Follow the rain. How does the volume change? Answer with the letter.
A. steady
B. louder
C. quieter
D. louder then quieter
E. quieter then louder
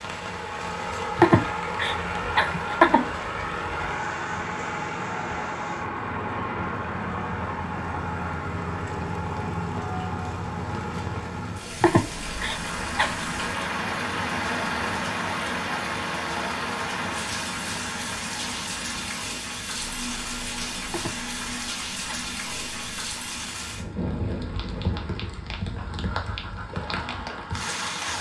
B.